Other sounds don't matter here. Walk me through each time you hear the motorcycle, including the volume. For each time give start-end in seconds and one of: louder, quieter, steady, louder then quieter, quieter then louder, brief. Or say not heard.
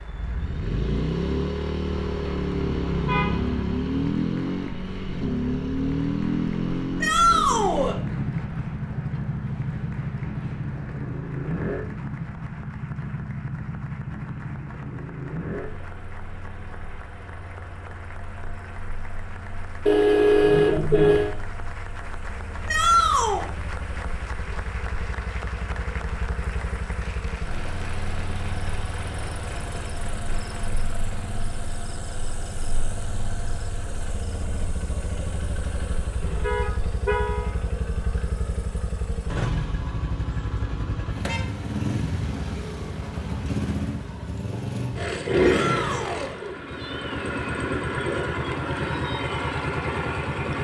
0.0-50.5 quieter then louder.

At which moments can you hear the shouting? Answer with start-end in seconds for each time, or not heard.
7.0-8.0, 22.6-23.5, 45.4-46.4.